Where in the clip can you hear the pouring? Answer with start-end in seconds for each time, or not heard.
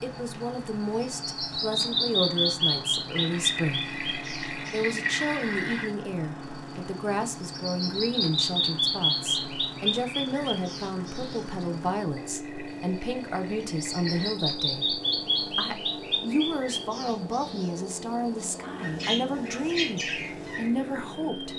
3.1-5.9, 12.2-14.3.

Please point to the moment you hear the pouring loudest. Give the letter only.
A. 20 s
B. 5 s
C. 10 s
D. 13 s
B.